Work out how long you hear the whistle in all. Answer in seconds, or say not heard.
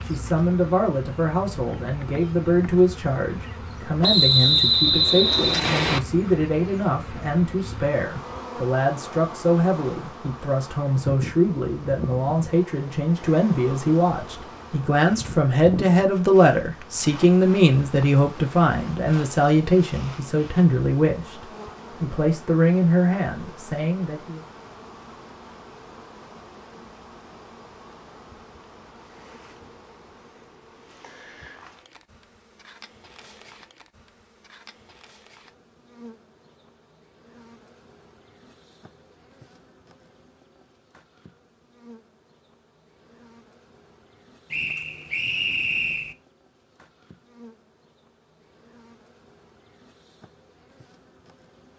4 s.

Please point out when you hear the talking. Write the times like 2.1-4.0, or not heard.
0.0-24.4.